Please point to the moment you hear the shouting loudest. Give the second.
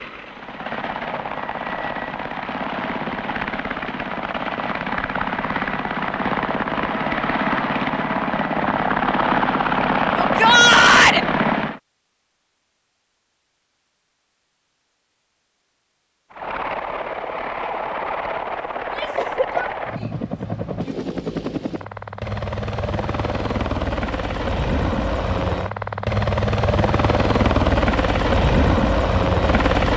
11 s.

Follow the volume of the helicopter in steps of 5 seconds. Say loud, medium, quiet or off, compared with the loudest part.
medium, loud, loud, medium, medium, loud.